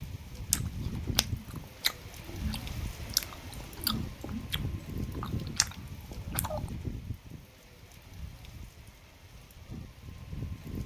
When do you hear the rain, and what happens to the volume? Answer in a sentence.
You can hear the rain from 0.0 to 10.8 s, getting quieter.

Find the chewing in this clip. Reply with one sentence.
You can hear the chewing from 0.5 to 6.7 s.